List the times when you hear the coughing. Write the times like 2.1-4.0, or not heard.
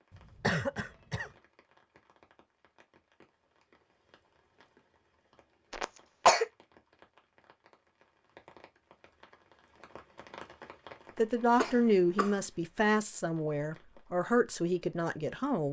0.1-1.3, 5.7-6.5, 11.6-12.3.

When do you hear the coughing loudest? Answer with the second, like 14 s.
6 s.